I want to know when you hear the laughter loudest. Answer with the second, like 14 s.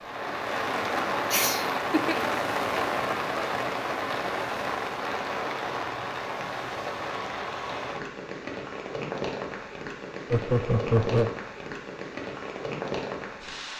11 s.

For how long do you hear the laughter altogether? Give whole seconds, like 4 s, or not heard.
2 s.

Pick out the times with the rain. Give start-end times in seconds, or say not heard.
0.0-13.7.